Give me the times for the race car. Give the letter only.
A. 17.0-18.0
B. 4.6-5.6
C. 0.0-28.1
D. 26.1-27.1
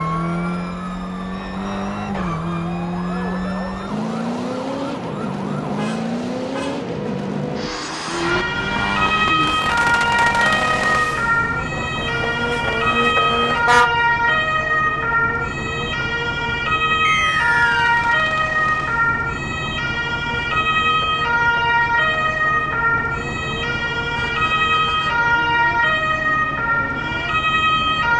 C.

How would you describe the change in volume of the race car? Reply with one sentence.
The volume of the race car goes down.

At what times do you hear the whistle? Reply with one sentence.
The whistle can be heard from 17.0 to 18.0 s.